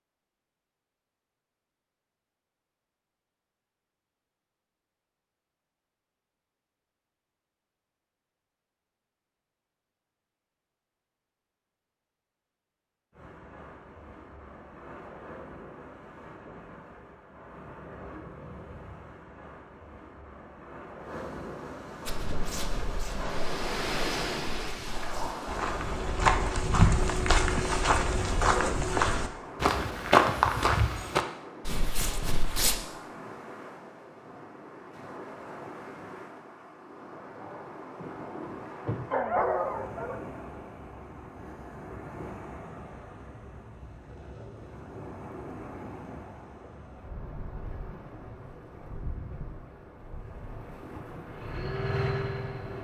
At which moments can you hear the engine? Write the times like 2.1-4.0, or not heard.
51.2-52.7.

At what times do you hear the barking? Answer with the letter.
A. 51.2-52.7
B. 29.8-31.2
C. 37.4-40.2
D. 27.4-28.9
C.